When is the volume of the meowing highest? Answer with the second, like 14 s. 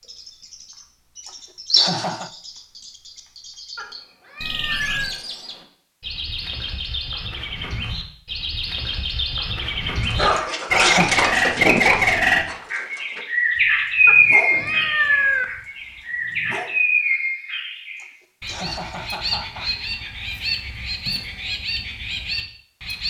15 s.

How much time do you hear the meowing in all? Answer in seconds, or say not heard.
3 s.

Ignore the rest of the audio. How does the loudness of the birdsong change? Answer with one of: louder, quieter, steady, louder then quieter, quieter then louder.
louder then quieter.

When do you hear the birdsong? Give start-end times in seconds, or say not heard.
0.0-23.0.